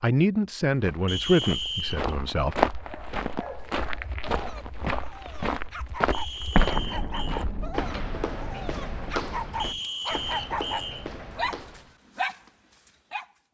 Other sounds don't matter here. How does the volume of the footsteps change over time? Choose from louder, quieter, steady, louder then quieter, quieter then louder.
quieter.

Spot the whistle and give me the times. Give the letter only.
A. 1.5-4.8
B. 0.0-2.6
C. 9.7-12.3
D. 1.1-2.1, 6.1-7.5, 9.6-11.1
D.